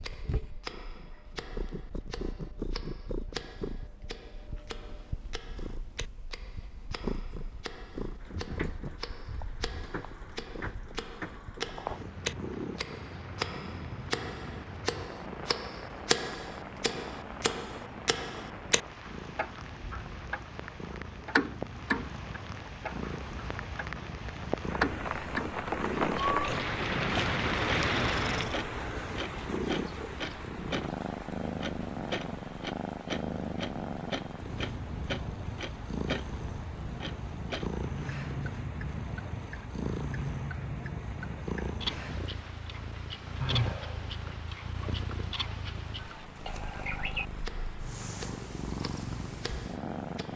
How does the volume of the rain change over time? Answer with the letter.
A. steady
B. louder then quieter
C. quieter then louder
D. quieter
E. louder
B.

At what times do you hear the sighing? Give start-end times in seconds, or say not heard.
43.4-44.1.